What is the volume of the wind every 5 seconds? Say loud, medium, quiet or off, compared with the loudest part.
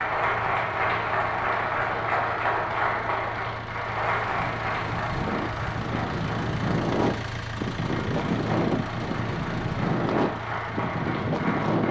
quiet, loud, loud.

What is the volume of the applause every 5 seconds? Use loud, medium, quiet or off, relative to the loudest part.
loud, medium, medium.